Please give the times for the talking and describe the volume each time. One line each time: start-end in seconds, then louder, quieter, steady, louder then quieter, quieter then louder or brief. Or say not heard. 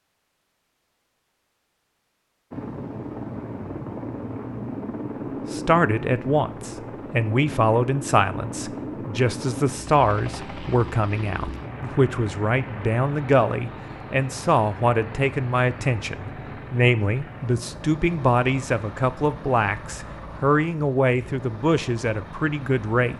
5.5-23.1 steady.